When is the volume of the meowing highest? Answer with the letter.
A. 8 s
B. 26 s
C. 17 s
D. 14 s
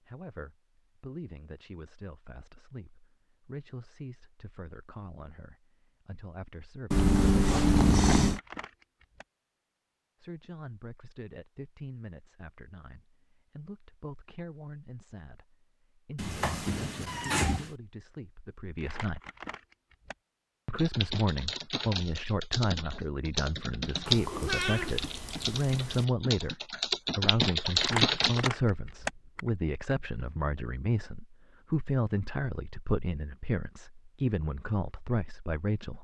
A.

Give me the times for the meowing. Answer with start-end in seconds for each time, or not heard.
6.9-8.4, 16.1-17.7, 24.1-26.1.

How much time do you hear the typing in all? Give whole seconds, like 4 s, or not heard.
8 s.